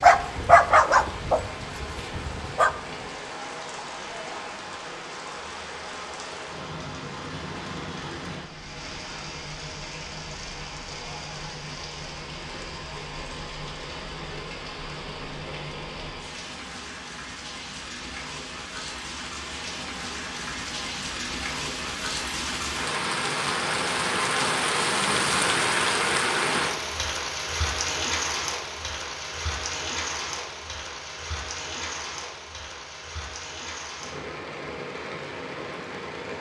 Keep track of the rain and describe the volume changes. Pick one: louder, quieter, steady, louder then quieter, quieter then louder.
louder then quieter.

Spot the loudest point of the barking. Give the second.
1 s.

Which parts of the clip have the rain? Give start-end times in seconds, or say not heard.
0.0-36.3.